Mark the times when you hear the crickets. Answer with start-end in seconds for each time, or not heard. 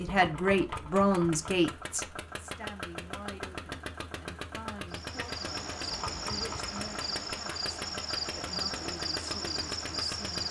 4.9-10.4.